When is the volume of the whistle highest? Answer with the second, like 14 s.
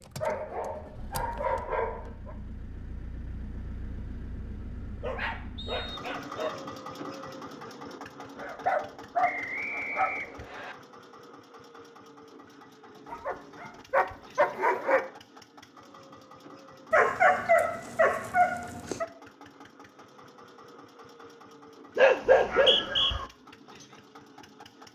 23 s.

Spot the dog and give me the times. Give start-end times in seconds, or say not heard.
0.2-2.4, 5.0-6.6, 8.3-10.4, 13.1-15.1, 16.9-19.1, 21.9-23.2.